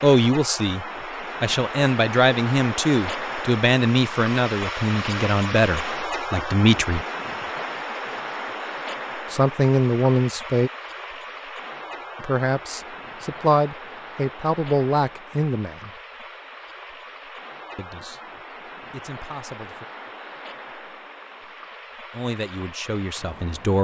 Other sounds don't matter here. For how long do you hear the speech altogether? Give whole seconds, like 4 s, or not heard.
16 s.